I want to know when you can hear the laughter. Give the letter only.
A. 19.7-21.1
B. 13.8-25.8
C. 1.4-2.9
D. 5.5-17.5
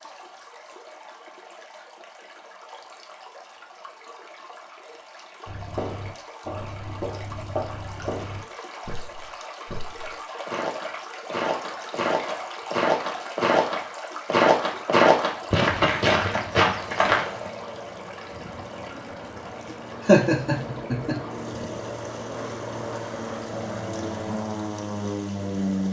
A.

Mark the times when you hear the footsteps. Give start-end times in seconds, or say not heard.
5.5-17.5.